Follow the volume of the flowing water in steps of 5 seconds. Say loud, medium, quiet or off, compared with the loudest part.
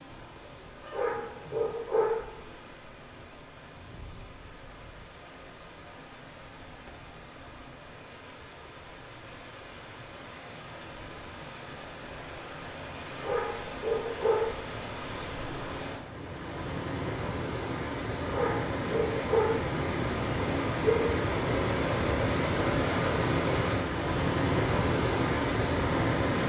quiet, quiet, quiet, medium, loud, loud.